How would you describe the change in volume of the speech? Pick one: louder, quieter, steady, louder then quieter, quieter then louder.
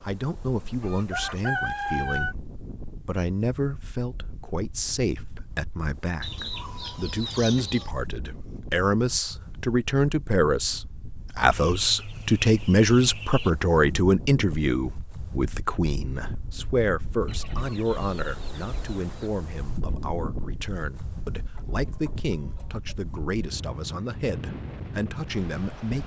louder then quieter.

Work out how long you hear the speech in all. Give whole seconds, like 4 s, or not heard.
26 s.